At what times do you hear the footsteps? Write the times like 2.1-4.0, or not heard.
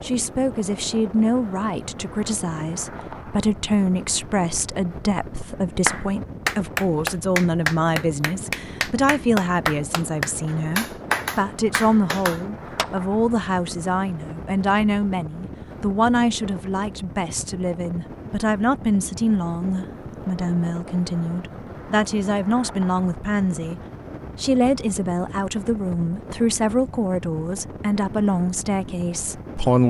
not heard.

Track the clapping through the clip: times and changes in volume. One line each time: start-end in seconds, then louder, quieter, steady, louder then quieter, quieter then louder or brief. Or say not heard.
5.8-13.1 quieter.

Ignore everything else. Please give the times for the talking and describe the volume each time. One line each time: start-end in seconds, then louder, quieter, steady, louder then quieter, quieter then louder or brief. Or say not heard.
0.0-29.8 steady.